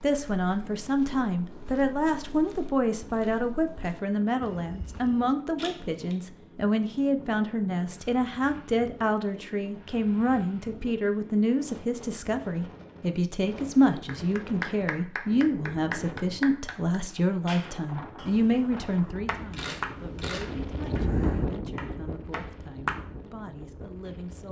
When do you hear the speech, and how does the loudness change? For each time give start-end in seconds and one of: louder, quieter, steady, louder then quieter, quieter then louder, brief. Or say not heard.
0.0-24.4 quieter.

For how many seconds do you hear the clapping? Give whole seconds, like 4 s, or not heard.
9 s.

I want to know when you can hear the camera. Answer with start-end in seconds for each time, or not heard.
5.5-6.2, 19.5-20.7.